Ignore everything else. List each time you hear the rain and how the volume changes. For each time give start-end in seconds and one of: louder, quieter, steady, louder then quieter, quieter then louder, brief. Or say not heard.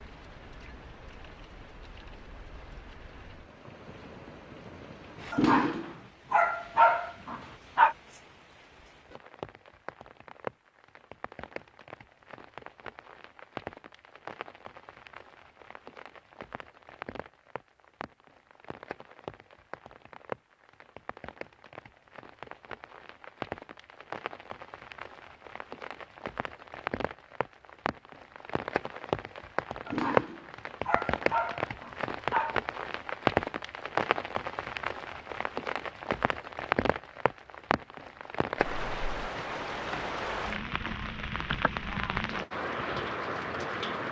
0.0-44.0 louder.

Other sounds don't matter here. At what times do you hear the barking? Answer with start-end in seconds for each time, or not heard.
5.3-8.0, 29.9-32.5.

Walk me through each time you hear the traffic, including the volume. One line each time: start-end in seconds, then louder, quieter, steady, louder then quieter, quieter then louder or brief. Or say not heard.
not heard.